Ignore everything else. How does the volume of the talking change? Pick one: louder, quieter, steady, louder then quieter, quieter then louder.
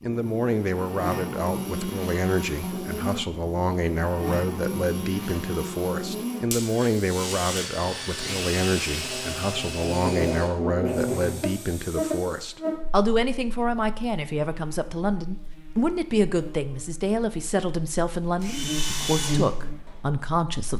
steady.